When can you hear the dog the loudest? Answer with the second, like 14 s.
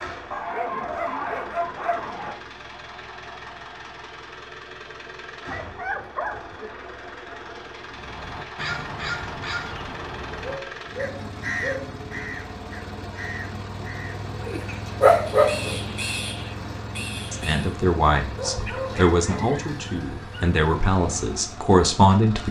15 s.